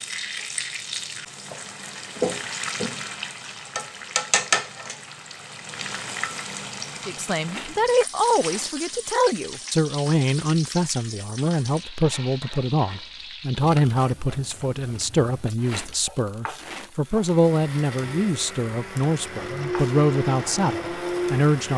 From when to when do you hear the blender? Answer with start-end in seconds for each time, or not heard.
17.1-21.7.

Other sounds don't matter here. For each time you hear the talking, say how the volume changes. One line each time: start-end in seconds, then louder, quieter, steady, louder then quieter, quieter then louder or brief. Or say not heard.
7.0-21.7 steady.